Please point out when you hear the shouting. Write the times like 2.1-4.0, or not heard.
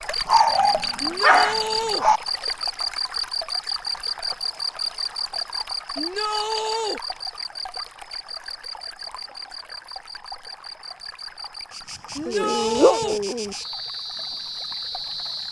1.0-2.0, 6.0-7.0, 12.2-13.2.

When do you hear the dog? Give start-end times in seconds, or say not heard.
0.2-2.2, 12.2-13.6.